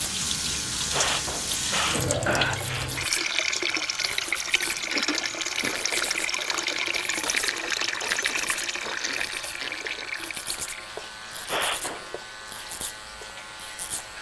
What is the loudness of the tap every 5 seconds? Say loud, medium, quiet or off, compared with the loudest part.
loud, loud, quiet.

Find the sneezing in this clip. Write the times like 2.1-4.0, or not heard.
0.9-2.9, 11.4-12.1.